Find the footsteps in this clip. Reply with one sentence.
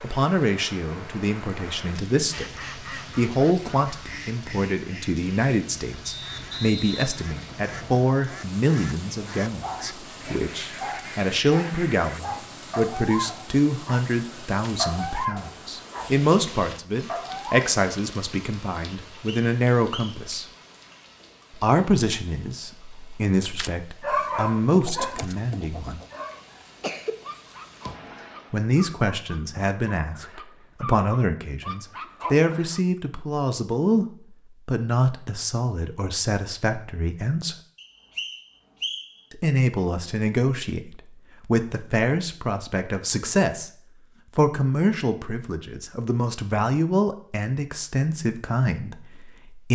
The footsteps can't be heard in this clip.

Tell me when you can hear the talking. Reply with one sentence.
The talking can be heard from 0.0 to 20.4 s, from 21.5 to 26.0 s, from 28.5 to 37.5 s, from 39.3 to 43.7 s and from 44.4 to 49.7 s.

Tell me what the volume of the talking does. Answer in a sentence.
The loudness of the talking stays about the same.